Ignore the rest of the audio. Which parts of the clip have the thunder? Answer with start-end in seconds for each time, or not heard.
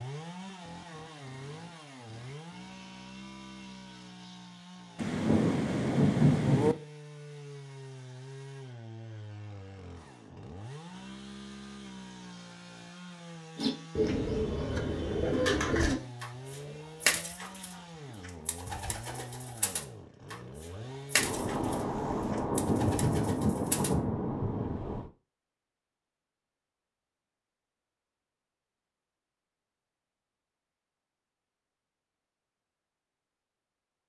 5.0-6.8, 21.1-25.1.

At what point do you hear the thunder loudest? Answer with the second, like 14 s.
6 s.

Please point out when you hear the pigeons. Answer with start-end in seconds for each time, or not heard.
13.6-23.9.